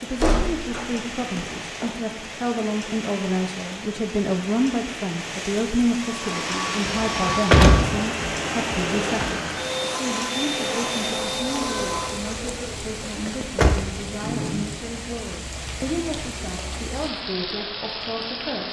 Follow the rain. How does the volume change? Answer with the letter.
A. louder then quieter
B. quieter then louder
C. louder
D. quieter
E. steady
E.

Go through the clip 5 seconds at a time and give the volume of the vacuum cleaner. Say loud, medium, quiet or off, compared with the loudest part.
off, loud, loud, off.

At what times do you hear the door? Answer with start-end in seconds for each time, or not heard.
0.2-1.9, 6.9-7.9, 13.2-13.8.